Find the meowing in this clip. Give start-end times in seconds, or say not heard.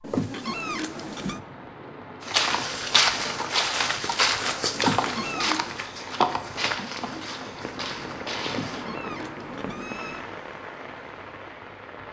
0.0-1.4, 4.7-5.8, 8.4-10.3.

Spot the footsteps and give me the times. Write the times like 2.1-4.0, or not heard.
2.2-8.9.